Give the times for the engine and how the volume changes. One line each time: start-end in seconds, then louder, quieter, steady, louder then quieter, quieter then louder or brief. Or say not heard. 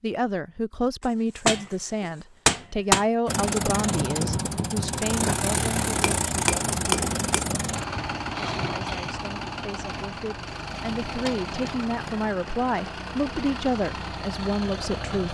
3.2-15.2 quieter.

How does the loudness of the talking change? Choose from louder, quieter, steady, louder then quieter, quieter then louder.
quieter then louder.